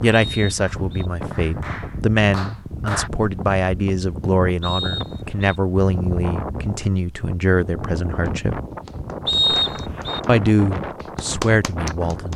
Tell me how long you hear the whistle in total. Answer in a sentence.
The whistle can be heard for 3 seconds in total.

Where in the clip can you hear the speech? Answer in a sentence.
The speech can be heard from 0.0 to 8.6 s and from 10.2 to 12.3 s.